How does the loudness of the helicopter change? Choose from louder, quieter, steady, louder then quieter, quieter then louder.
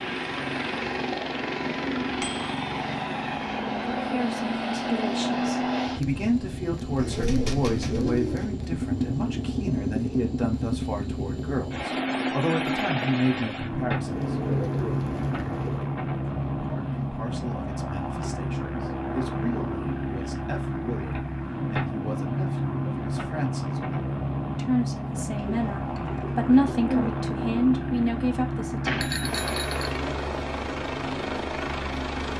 steady.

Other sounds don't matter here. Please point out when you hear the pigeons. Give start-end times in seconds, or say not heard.
7.0-8.5, 14.1-15.9, 25.4-27.1.